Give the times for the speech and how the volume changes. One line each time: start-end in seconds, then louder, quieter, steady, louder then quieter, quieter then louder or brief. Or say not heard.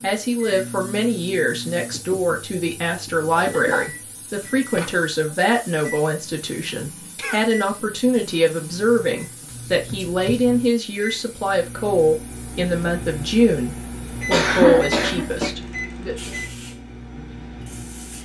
0.0-16.4 steady.